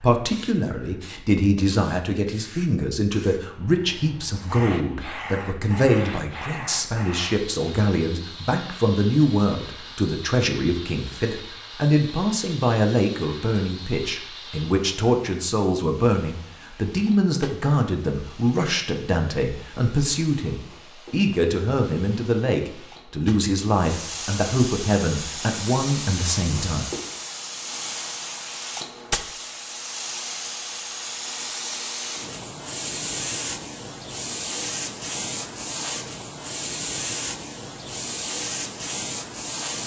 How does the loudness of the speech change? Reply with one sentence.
The volume of the speech stays about the same.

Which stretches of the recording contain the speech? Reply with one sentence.
The speech can be heard from 0.0 to 26.9 s.